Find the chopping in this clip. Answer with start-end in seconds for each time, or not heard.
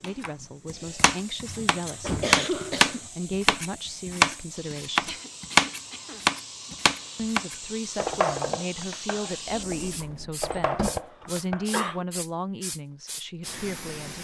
0.0-11.8.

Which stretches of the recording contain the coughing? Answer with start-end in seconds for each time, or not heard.
1.4-3.1, 5.0-6.8, 10.4-12.1.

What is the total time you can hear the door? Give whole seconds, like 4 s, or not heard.
2 s.